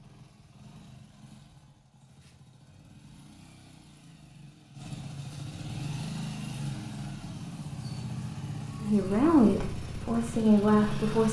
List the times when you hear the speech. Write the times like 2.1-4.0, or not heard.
8.8-11.2.